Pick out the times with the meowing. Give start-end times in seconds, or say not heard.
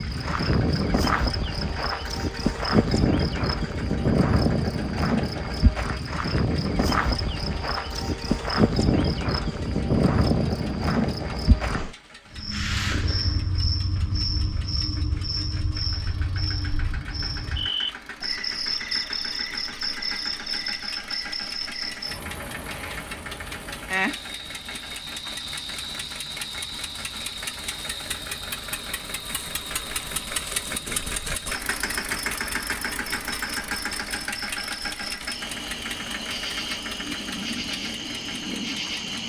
not heard.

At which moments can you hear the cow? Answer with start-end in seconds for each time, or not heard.
not heard.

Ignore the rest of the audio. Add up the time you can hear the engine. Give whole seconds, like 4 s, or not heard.
39 s.